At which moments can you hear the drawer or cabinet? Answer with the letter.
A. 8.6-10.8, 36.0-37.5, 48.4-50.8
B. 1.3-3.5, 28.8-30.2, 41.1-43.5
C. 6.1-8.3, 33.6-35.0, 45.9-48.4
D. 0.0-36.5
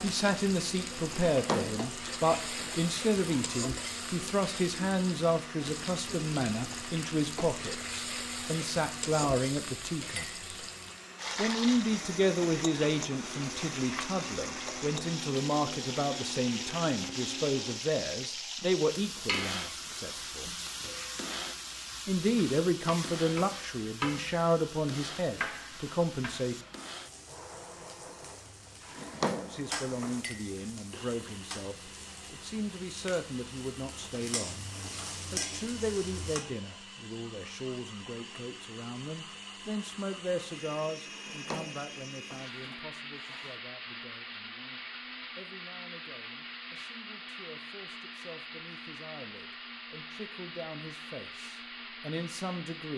B.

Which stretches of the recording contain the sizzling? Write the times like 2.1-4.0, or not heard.
0.0-36.5.